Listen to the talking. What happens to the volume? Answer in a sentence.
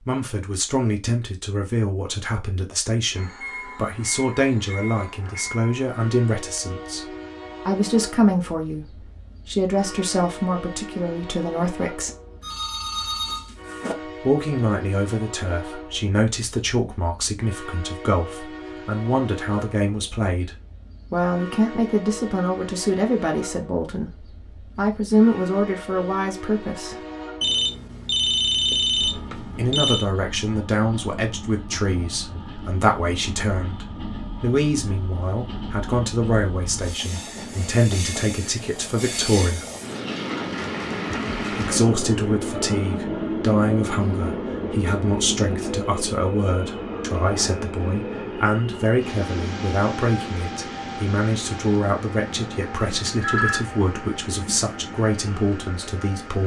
The loudness of the talking stays about the same.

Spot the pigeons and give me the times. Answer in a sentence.
You can't hear the pigeons here.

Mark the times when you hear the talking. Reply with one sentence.
You can hear the talking from 0.0 to 12.1 s, from 14.2 to 26.9 s, from 29.6 to 39.6 s and from 41.5 to 56.4 s.